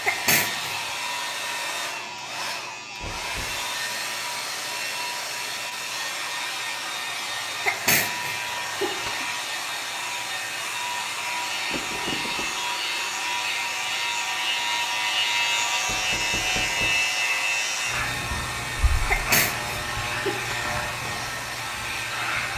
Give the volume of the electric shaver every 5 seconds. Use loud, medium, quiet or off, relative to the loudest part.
medium, medium, loud, loud, medium.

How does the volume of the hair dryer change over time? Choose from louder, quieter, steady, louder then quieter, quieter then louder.
steady.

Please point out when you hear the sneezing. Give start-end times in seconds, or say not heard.
0.1-0.8, 7.7-9.2, 19.1-20.7.